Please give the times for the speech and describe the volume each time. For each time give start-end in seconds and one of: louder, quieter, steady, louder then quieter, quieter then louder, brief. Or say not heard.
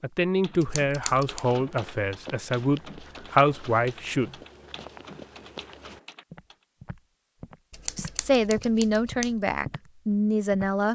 0.0-4.3 quieter then louder
8.0-10.9 brief.